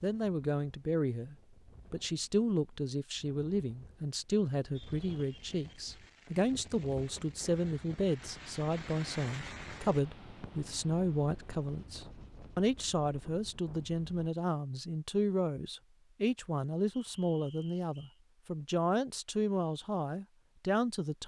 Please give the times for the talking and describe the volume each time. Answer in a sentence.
You can hear the talking from 0.0 to 21.2 s, at a steady volume.